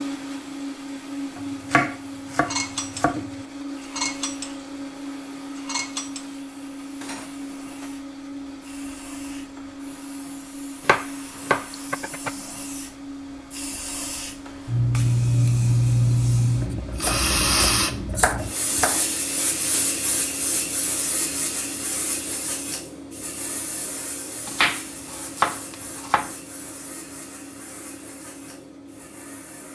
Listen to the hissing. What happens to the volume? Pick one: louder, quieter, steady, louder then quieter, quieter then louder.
louder then quieter.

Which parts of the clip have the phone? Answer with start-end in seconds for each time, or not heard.
not heard.